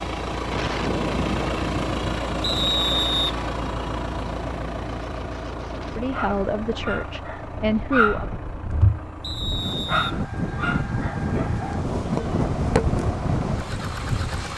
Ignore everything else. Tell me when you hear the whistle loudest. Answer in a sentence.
The loudest moment of the whistle is at 3 seconds.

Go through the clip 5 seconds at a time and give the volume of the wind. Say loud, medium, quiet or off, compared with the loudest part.
medium, medium, loud.